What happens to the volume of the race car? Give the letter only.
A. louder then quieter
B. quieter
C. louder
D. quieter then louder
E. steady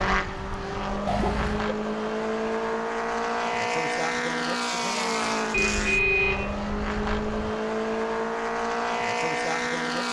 E.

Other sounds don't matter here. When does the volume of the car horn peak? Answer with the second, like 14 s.
6 s.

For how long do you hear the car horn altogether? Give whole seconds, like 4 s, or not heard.
3 s.